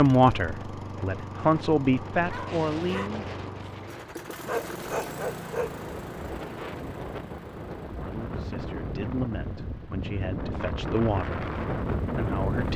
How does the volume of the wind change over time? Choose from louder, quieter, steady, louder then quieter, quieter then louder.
louder.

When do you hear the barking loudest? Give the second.
5 s.